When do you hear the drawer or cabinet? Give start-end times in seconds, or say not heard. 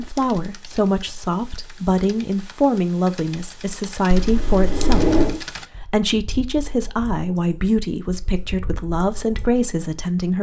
4.1-5.4.